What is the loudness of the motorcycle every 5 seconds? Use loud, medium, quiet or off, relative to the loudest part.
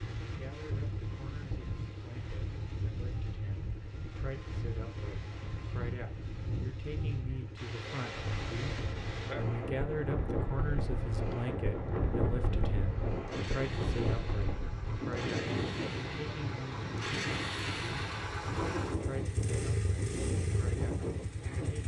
medium, medium, medium, loud, loud.